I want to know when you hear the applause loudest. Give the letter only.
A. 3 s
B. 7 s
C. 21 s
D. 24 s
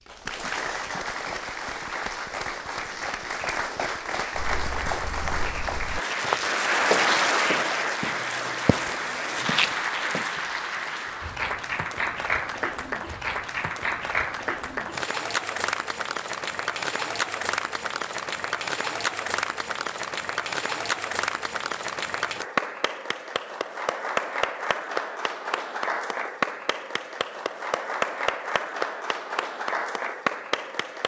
B.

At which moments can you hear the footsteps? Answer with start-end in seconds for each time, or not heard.
4.3-10.3.